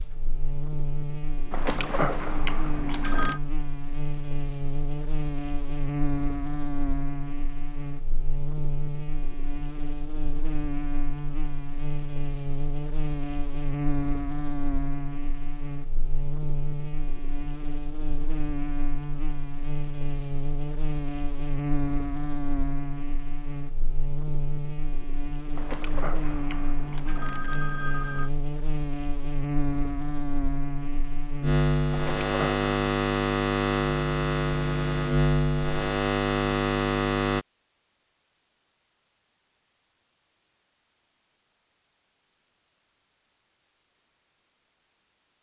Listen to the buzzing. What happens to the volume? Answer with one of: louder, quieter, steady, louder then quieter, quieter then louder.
louder.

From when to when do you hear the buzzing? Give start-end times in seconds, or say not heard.
0.0-37.5.